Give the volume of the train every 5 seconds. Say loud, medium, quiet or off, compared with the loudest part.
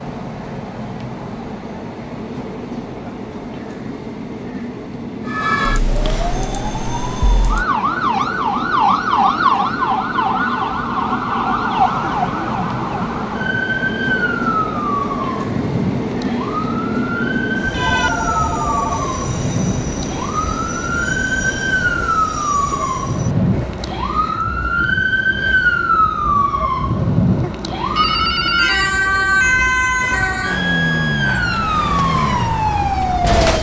medium, medium, loud, loud, medium, medium, medium.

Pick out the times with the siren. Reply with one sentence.
You can hear the siren from 5.2 to 33.5 s.